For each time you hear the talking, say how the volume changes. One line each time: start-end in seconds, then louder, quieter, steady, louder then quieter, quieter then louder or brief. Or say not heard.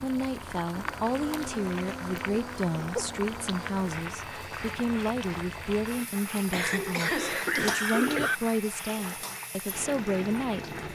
0.0-10.8 steady.